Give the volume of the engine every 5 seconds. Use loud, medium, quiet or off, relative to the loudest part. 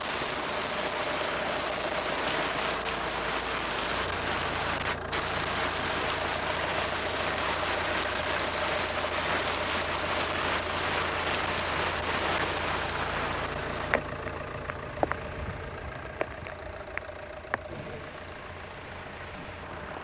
loud, loud, loud, medium.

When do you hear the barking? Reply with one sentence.
The barking can't be heard in this clip.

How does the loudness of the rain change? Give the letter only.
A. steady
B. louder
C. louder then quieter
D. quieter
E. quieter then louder
D.